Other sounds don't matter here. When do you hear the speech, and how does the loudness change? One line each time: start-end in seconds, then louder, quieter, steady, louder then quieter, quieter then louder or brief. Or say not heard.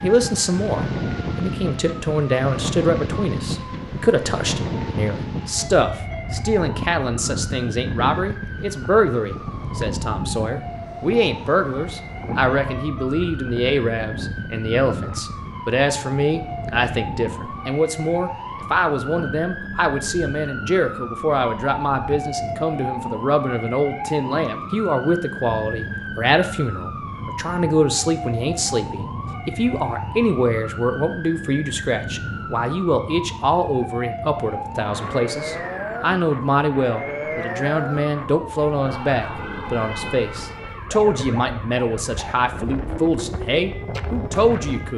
0.0-44.9 steady.